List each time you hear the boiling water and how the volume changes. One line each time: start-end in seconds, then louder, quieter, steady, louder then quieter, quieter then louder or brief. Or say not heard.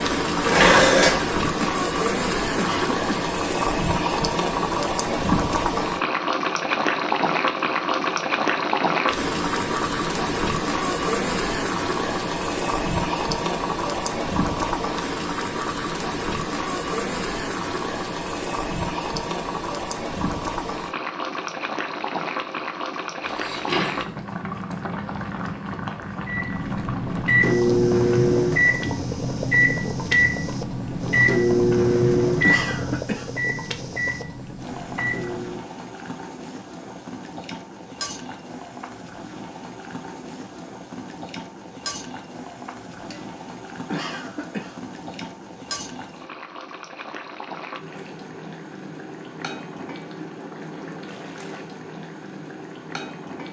0.0-53.4 quieter.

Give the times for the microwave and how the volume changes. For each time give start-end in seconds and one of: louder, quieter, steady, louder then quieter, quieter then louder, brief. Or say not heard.
26.2-35.6 quieter.